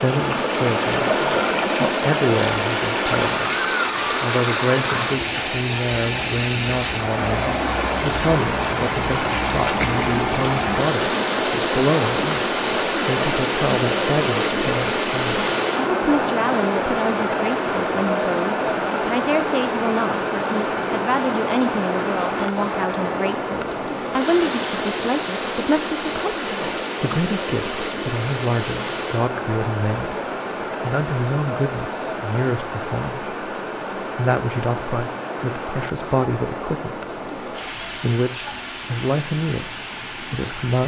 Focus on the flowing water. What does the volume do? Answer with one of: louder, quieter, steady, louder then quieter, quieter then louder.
quieter.